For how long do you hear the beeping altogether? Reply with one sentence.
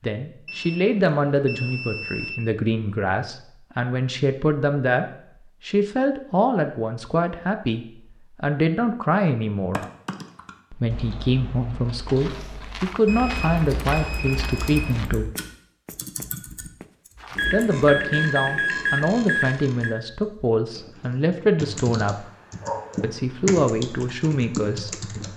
You can hear the beeping for 7 seconds altogether.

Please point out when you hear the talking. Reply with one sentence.
You can hear the talking from 0.0 to 5.0 s, from 5.7 to 9.8 s, from 10.7 to 15.3 s, from 17.5 to 22.2 s and from 23.0 to 25.0 s.